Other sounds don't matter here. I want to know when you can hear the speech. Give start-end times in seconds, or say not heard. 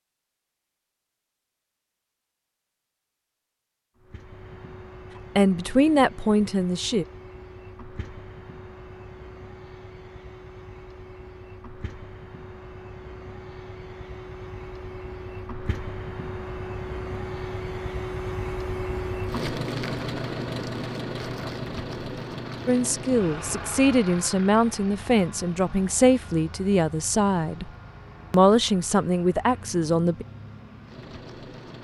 5.3-7.0, 22.6-27.7, 28.3-30.2.